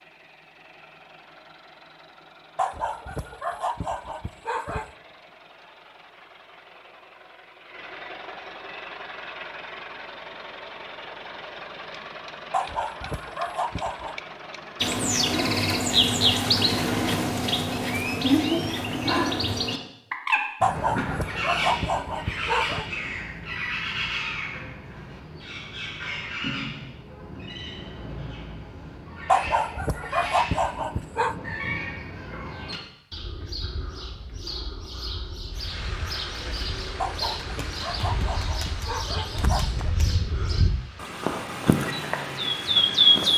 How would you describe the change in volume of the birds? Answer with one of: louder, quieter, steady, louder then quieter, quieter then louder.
quieter then louder.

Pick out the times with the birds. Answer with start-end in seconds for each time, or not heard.
14.8-43.3.